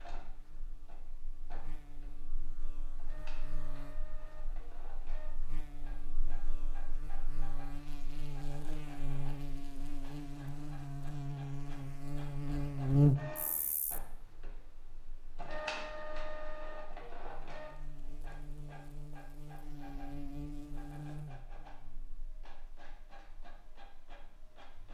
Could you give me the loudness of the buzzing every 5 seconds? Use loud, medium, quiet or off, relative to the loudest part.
quiet, quiet, loud, quiet, quiet.